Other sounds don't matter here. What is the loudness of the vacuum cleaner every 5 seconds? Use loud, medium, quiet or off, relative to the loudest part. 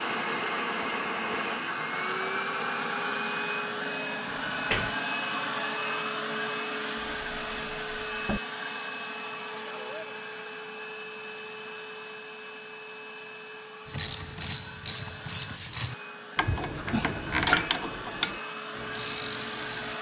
loud, loud, medium, medium.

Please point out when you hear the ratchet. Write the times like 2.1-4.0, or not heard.
13.8-19.9.